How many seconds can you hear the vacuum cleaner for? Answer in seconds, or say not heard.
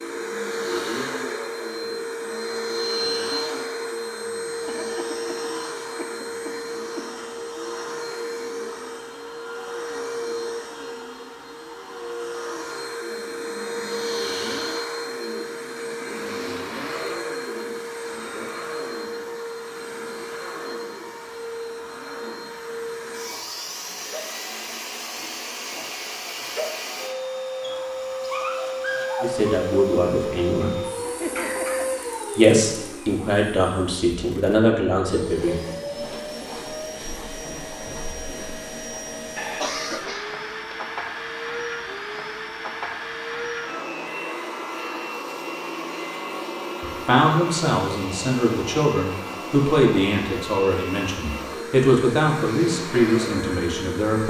54 s.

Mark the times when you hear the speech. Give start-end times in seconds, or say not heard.
29.2-30.8, 32.4-35.6, 46.8-54.2.